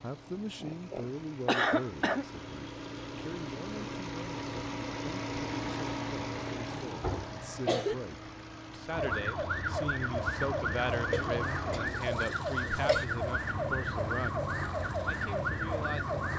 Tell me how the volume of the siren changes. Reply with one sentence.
The volume of the siren stays about the same.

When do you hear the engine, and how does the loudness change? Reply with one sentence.
The engine can be heard from 0.0 to 16.3 s, getting louder then quieter.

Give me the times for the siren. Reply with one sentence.
You can hear the siren from 8.9 to 16.3 s.